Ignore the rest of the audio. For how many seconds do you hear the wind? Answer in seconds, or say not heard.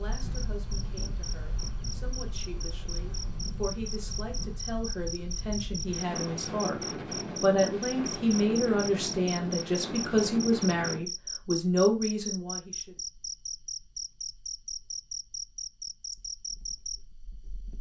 11 s.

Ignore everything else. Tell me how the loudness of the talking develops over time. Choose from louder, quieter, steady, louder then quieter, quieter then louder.
louder.